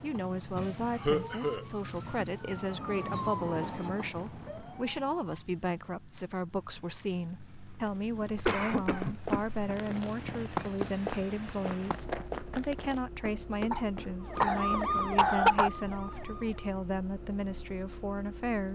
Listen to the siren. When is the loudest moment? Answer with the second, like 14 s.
15 s.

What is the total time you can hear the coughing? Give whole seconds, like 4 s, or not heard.
5 s.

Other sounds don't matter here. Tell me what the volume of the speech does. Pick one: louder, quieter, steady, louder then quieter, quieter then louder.
steady.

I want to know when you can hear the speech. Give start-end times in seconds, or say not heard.
0.0-18.7.